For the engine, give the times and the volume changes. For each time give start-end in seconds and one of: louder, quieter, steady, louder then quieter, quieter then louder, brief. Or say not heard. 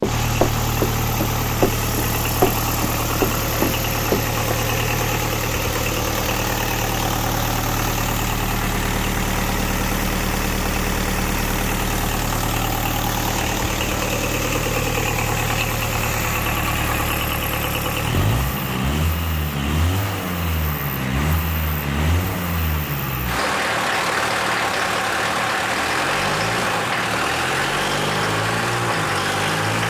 0.0-29.8 steady.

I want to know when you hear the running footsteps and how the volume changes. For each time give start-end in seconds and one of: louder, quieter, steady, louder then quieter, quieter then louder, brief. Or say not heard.
0.0-4.3 quieter then louder.